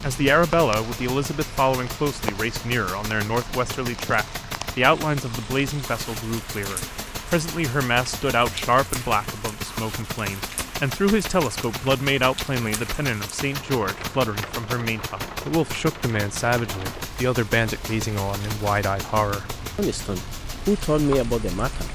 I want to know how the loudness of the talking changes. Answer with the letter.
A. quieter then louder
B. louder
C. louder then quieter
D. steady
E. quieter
D.